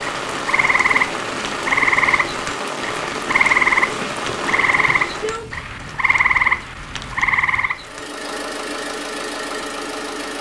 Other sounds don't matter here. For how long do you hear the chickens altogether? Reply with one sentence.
The chickens can't be heard in this clip.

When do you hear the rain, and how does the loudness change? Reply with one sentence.
You can hear the rain from 0.0 to 7.7 s, getting quieter.